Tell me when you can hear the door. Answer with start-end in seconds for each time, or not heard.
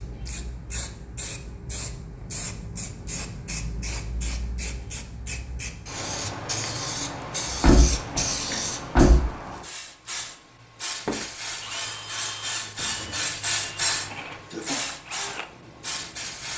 7.5-9.2.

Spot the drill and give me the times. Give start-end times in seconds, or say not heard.
11.1-16.5.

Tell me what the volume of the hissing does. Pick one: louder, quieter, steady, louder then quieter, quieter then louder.
louder.